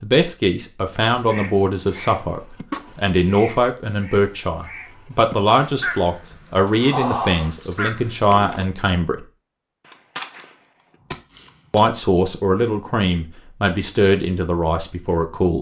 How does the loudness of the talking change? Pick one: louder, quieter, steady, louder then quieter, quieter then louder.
steady.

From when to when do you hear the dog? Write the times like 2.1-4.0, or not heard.
not heard.